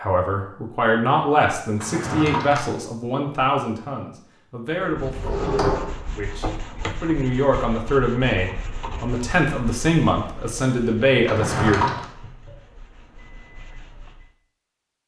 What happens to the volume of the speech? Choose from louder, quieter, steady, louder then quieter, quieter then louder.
quieter then louder.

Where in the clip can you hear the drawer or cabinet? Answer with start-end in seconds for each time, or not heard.
1.8-2.7, 5.0-6.0, 11.2-12.1.